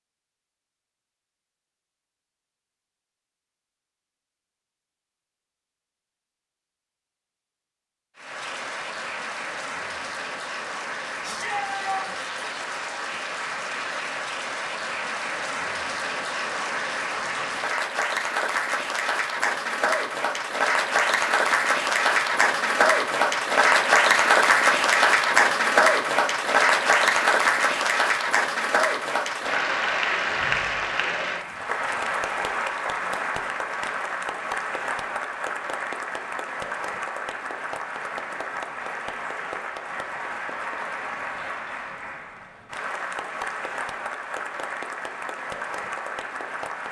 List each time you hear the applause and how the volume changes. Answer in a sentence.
You can hear the applause from 8.2 to 46.8 s, getting louder then quieter.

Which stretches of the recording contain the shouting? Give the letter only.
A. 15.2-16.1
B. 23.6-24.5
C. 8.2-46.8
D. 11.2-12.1
D.